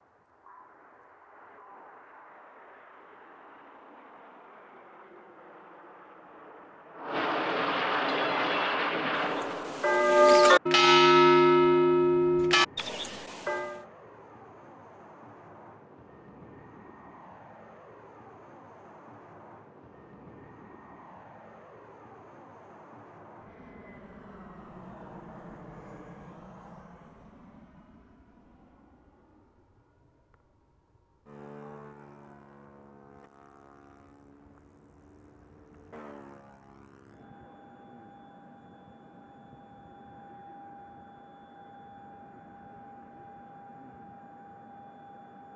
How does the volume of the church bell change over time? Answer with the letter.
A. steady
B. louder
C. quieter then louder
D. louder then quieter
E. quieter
D.